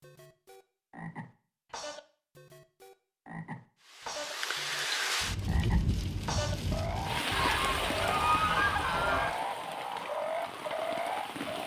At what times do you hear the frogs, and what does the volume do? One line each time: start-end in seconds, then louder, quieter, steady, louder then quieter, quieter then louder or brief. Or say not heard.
0.0-11.6 louder.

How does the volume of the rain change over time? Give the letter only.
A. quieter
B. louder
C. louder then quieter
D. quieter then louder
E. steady
A.